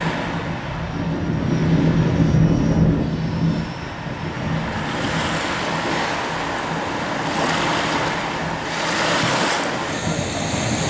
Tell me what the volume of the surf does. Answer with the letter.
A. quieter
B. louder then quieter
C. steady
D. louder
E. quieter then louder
D.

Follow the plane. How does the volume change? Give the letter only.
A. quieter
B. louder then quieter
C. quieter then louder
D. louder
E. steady
A.